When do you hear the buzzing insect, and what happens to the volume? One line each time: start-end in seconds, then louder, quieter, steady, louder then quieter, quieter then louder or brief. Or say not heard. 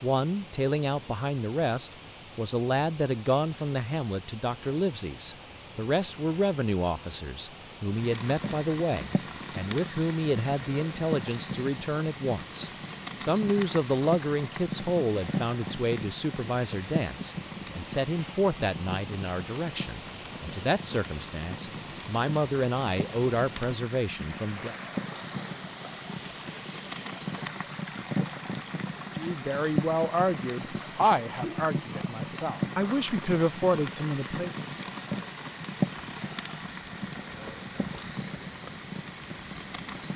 not heard.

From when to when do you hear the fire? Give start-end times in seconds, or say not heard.
7.9-40.1.